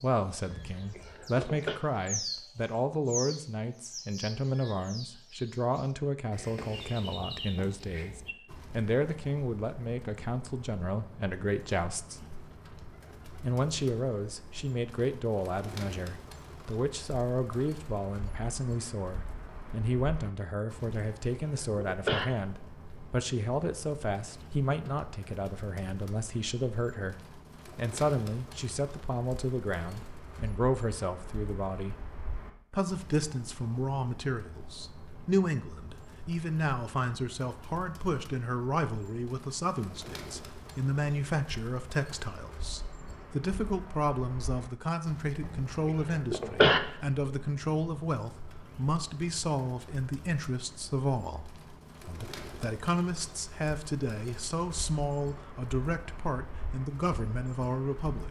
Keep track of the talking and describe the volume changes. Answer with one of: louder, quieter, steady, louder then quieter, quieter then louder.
steady.